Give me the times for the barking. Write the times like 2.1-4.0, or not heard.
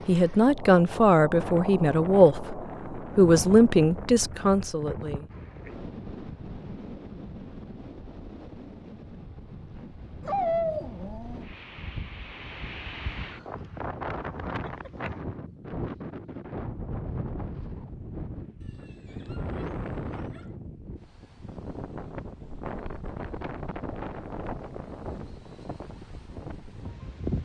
10.2-11.4, 18.6-20.5.